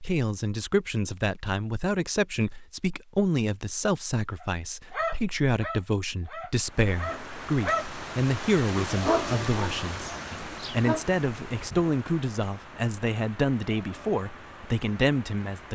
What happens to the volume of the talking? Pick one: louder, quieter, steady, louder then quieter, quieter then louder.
steady.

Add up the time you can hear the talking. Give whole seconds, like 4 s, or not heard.
16 s.